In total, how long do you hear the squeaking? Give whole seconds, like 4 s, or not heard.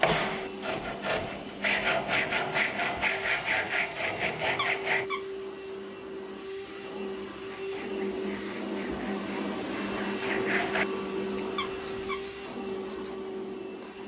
2 s.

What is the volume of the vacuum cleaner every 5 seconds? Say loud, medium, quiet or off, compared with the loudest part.
medium, loud, loud.